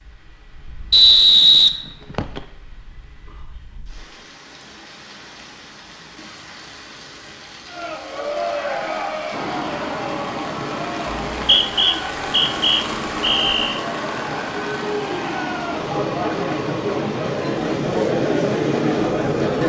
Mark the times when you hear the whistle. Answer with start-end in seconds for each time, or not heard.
0.9-2.4, 11.3-13.8.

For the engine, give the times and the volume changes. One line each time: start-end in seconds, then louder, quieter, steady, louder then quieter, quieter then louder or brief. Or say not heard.
9.3-19.6 steady.